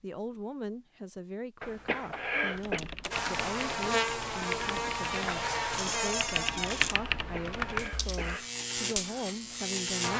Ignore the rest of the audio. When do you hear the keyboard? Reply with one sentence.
You can hear the keyboard from 2.5 to 8.3 s.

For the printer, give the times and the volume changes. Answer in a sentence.
You can't hear the printer here.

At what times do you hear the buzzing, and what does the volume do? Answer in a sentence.
The buzzing can be heard from 3.1 to 10.1 s, getting quieter then louder.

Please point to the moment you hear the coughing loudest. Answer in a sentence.
The volume of the coughing peaks at 2 seconds.